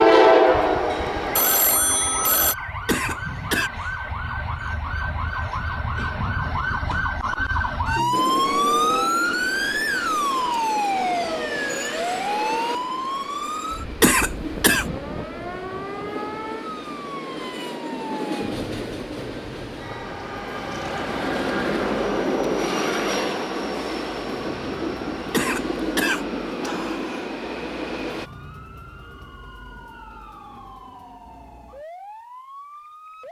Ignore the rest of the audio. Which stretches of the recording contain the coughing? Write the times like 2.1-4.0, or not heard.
2.9-3.7, 14.0-14.8, 25.3-27.2.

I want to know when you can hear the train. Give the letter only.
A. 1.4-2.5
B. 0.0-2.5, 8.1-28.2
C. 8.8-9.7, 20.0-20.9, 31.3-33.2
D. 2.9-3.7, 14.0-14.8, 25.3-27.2
B.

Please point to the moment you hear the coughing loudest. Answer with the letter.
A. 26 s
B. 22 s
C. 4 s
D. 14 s
D.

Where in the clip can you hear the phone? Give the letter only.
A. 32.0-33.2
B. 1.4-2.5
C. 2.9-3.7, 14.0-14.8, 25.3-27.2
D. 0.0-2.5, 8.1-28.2
B.